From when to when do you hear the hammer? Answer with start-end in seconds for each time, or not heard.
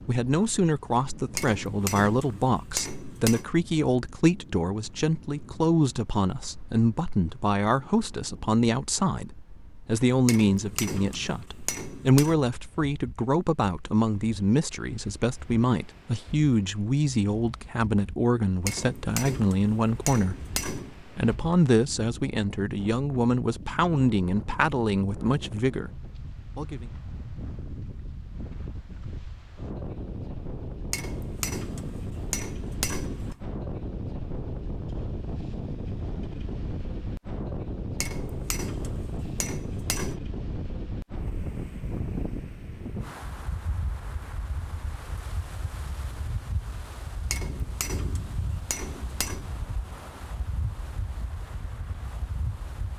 1.4-3.5, 10.2-12.4, 18.6-20.9, 30.9-33.4, 38.0-40.2, 47.3-49.5.